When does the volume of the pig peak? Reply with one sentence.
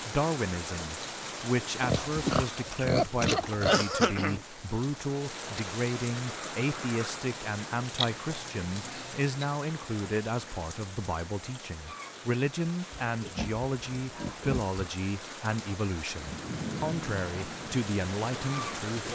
The volume of the pig peaks at 3 seconds.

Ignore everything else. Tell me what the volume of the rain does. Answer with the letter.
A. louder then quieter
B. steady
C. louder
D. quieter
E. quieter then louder
E.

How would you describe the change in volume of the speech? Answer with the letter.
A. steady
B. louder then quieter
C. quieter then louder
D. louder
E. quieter
A.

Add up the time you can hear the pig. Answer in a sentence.
You can hear the pig for 5 seconds altogether.